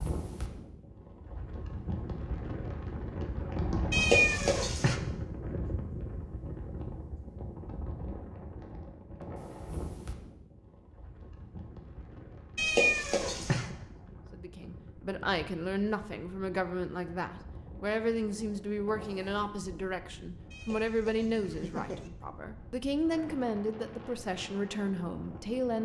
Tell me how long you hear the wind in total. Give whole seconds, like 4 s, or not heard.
26 s.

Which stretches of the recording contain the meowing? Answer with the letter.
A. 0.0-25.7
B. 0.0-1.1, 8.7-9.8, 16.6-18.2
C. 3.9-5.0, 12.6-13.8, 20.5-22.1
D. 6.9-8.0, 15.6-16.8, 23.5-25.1
C.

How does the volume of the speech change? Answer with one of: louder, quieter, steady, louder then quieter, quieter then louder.
steady.